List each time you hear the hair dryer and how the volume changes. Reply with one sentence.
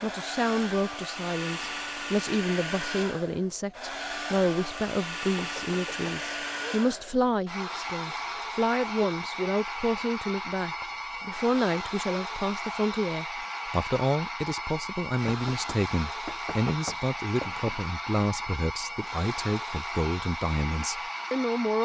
You can hear the hair dryer from 0.0 to 21.8 s, at a steady volume.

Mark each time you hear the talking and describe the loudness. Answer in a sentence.
The talking can be heard from 0.0 to 21.8 s, at a steady volume.